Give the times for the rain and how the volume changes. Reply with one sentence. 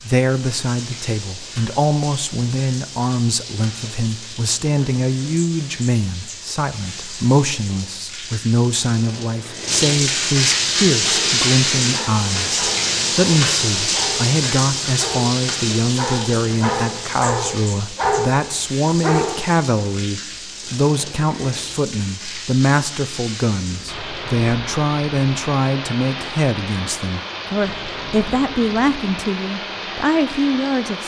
The rain can be heard from 0.0 to 31.0 s, getting louder then quieter.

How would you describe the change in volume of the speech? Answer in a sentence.
The loudness of the speech stays about the same.